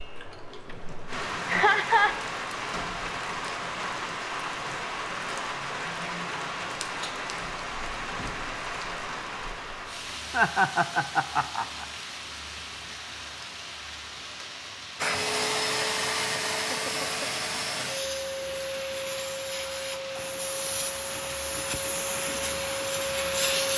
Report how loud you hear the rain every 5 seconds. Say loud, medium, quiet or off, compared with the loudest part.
loud, loud, medium, medium, medium.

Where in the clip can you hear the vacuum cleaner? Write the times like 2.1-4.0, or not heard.
14.9-23.7.